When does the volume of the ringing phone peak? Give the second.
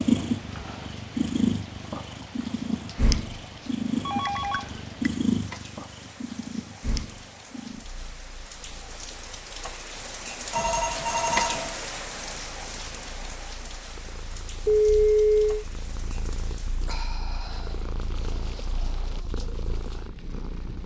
15 s.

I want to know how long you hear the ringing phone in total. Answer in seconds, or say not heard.
3 s.